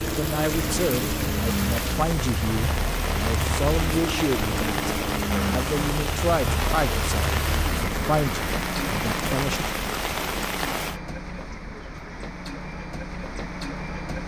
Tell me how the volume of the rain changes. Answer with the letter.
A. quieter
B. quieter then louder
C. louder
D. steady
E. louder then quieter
D.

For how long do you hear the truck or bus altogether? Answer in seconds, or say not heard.
14 s.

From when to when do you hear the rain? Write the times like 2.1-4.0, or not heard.
0.0-11.0.